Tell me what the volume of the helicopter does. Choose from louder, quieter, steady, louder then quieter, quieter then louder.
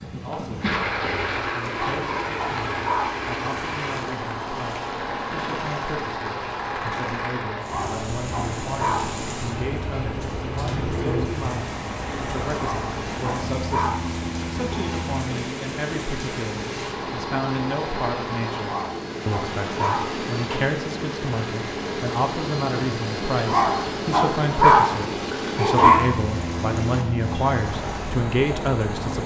steady.